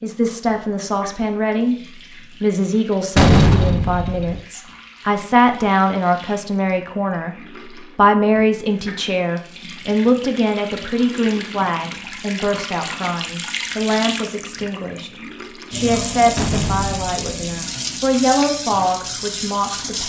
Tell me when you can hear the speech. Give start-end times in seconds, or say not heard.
0.0-7.3, 8.0-20.0.